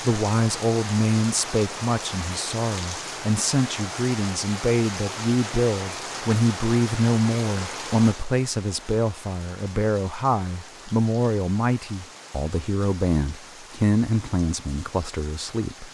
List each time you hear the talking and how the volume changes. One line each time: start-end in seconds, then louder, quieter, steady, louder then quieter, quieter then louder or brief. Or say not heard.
0.0-15.8 steady.